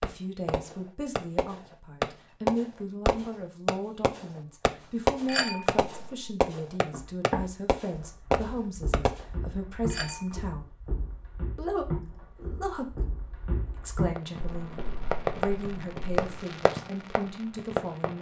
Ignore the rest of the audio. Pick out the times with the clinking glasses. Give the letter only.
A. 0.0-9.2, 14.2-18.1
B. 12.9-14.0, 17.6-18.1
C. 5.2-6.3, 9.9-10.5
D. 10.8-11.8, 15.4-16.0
C.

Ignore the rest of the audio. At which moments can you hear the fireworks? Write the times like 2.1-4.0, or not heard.
0.0-9.2, 14.2-18.1.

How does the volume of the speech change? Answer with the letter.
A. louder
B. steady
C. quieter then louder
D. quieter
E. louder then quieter
B.